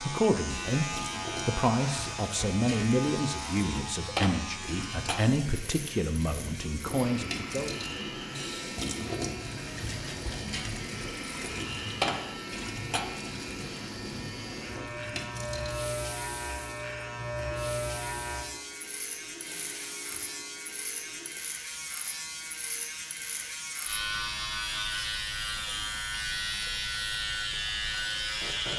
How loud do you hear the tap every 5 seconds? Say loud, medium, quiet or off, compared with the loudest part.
loud, loud, loud, medium, quiet, medium.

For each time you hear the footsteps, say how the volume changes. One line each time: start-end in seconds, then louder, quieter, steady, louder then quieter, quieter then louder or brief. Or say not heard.
not heard.